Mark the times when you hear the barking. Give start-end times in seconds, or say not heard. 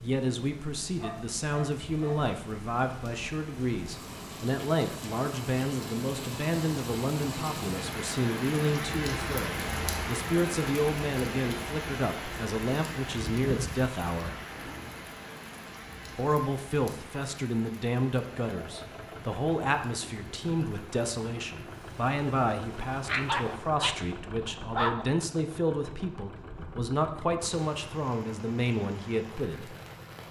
0.9-2.3, 23.1-25.1.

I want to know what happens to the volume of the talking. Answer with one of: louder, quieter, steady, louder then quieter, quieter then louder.
steady.